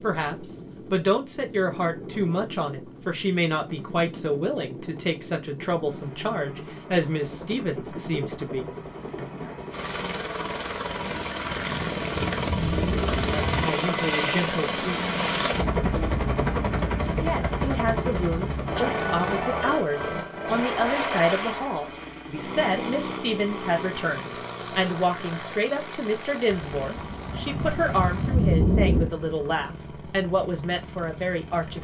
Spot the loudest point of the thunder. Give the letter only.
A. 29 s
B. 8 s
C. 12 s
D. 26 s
A.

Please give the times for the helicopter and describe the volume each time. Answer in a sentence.
The helicopter can be heard from 0.0 to 31.8 s, getting louder then quieter.